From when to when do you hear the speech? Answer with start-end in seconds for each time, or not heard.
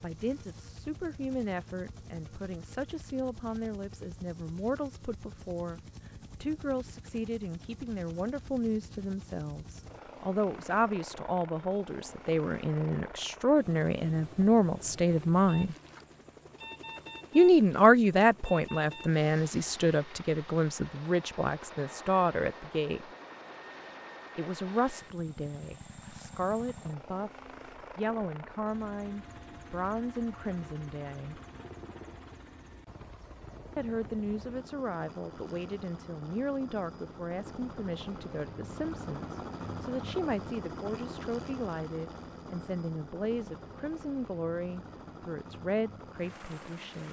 0.0-15.8, 17.4-23.1, 24.4-31.4, 33.8-47.0.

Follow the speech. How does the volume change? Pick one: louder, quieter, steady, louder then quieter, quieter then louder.
louder then quieter.